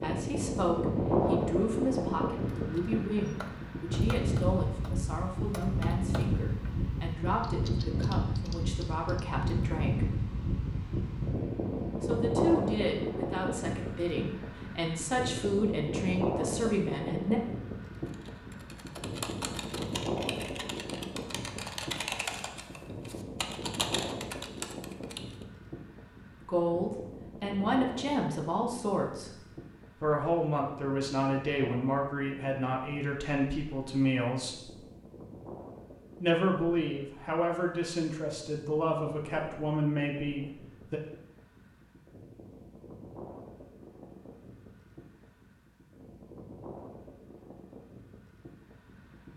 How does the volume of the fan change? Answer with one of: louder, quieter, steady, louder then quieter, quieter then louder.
quieter.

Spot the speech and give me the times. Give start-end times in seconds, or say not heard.
0.0-10.1, 12.0-17.4, 26.4-29.3, 30.0-34.7, 36.2-41.0.